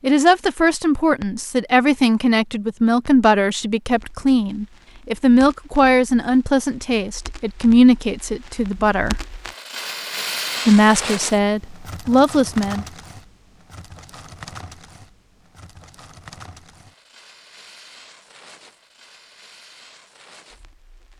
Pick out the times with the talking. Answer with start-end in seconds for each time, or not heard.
0.0-9.2, 10.7-12.8.